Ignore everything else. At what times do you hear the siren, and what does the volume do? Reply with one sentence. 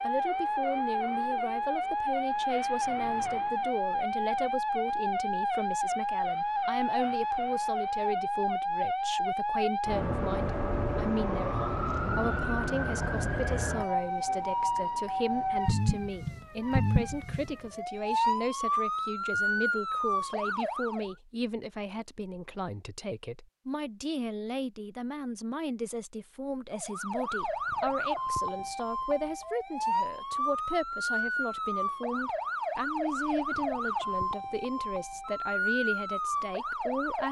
You can hear the siren from 0.0 to 21.1 s, at a steady volume; and from 26.8 to 37.2 s, at a steady volume.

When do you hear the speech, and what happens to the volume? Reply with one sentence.
The speech can be heard from 0.0 to 37.2 s, at a steady volume.